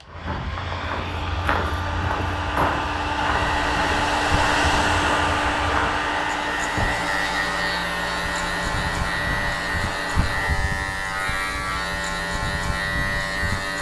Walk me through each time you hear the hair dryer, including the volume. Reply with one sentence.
You can hear the hair dryer from 0.0 to 10.5 s, getting louder then quieter.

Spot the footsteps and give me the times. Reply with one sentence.
You can hear the footsteps from 0.0 to 6.9 s.